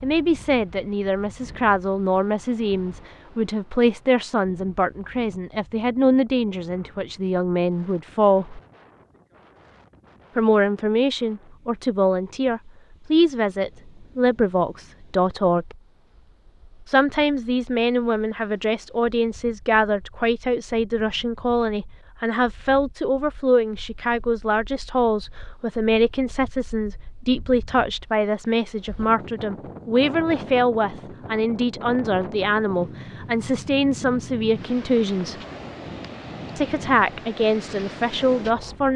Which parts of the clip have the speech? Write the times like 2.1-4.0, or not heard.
0.0-8.6, 10.3-15.8, 16.9-35.4, 36.5-38.9.